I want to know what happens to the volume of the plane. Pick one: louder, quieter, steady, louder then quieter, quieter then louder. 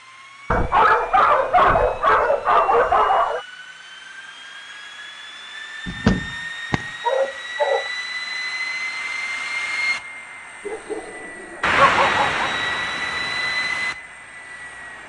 louder.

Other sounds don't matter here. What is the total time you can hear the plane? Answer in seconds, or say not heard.
15 s.